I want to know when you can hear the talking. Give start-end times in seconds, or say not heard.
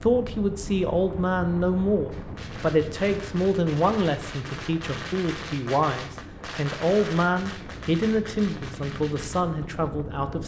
0.0-10.4.